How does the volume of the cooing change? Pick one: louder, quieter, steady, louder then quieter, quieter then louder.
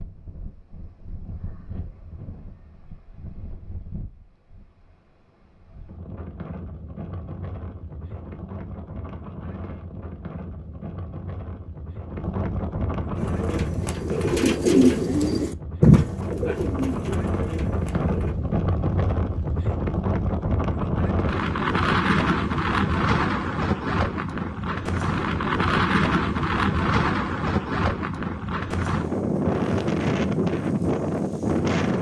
louder then quieter.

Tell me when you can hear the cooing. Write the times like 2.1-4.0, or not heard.
13.2-18.4.